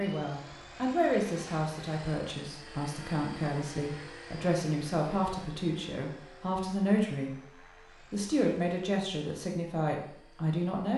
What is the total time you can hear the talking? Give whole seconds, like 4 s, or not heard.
10 s.